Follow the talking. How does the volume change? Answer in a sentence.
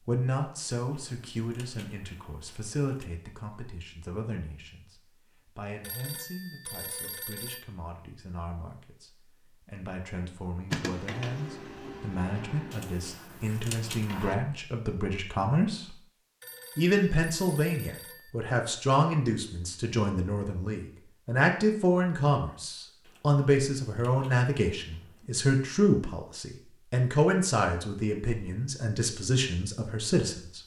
The loudness of the talking goes down, then up.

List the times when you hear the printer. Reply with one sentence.
The printer can be heard from 10.7 to 14.3 s.